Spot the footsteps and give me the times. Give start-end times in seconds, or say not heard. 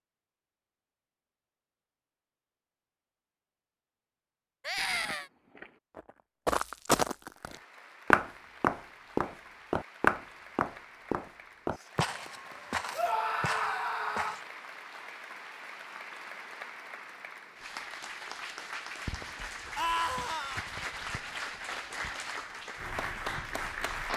5.0-14.4.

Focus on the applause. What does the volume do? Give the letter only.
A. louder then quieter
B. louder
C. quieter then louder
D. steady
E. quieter
B.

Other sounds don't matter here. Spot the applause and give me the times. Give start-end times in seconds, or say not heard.
7.3-24.1.